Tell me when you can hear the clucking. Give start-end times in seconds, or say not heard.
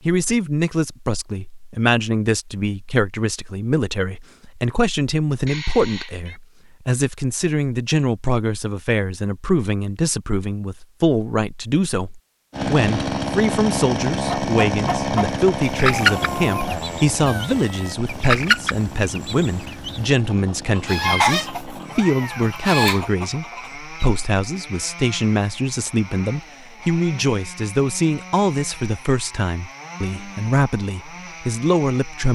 14.2-24.1.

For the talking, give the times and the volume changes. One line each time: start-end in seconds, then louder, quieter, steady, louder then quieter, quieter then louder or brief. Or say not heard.
0.1-32.2 steady.